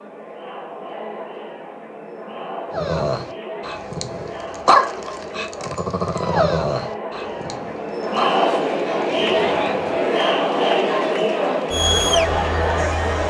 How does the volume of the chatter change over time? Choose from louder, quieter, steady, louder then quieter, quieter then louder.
louder.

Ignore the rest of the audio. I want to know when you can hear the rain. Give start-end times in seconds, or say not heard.
not heard.